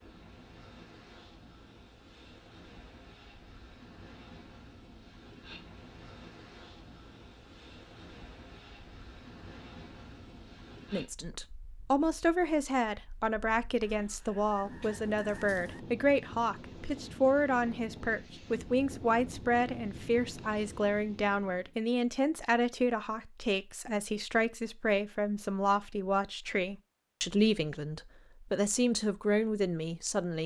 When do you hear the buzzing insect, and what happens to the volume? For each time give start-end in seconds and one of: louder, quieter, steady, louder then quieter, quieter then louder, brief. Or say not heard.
not heard.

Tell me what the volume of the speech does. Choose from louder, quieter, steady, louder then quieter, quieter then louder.
steady.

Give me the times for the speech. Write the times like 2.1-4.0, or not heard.
10.9-30.4.